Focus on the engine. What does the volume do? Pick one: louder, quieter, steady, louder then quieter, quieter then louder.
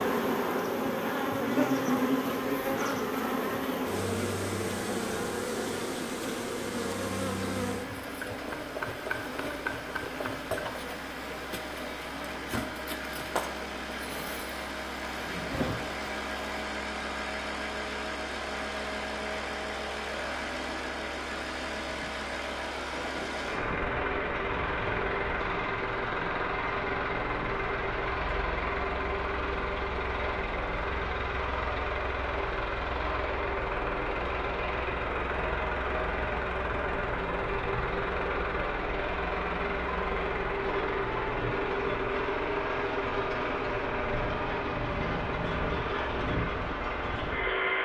louder.